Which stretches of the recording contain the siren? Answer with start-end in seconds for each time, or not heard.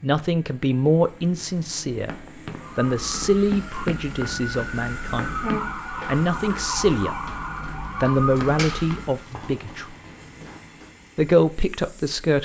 2.6-9.2.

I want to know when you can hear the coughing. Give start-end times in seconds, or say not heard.
not heard.